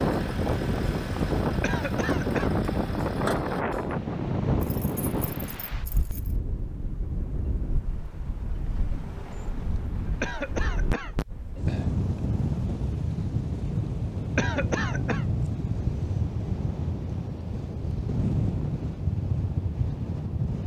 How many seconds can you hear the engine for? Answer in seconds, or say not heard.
4 s.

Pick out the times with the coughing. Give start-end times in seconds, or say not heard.
1.6-2.5, 10.2-11.2, 14.3-15.2.